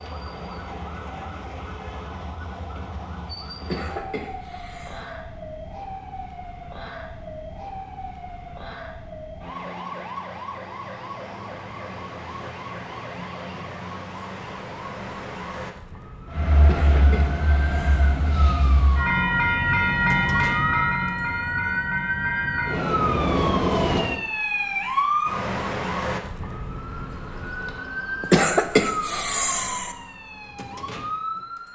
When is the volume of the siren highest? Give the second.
25 s.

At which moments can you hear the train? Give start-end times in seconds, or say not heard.
16.2-24.2.